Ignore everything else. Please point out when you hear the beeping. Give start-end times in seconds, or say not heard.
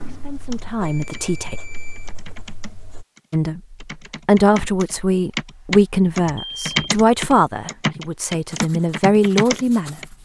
0.8-2.1, 6.3-6.8.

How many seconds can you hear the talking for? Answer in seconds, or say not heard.
8 s.